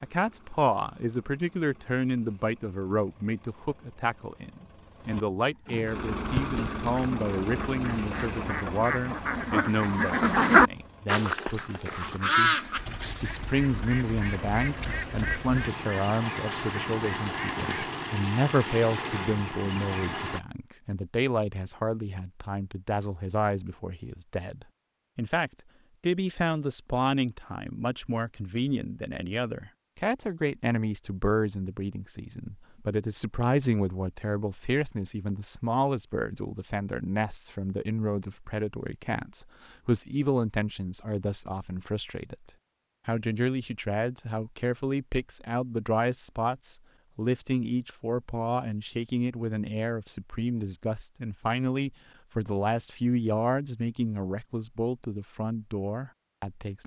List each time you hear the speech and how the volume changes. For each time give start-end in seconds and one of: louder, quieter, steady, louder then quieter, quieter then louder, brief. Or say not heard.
0.0-12.6 quieter
13.2-56.8 steady.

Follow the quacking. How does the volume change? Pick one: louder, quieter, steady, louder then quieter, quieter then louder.
louder then quieter.